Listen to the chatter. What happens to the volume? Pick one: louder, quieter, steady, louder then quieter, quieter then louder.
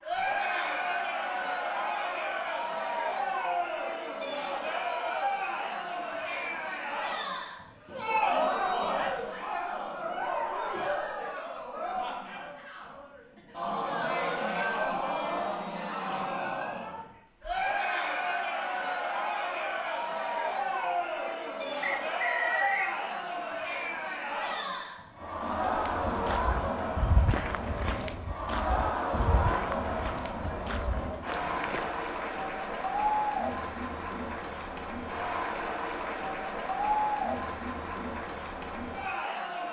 steady.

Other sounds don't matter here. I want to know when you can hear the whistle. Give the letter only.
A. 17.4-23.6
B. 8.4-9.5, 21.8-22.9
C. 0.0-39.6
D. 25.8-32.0
B.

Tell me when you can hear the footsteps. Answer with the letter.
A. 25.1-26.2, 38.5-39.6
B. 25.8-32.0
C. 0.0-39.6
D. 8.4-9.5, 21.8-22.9
B.